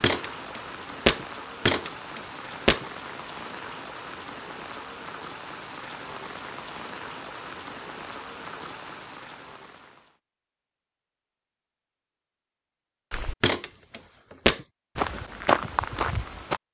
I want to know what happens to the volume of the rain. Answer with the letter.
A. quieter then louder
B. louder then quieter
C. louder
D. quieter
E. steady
E.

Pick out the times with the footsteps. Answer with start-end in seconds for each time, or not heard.
0.0-2.9, 13.1-16.6.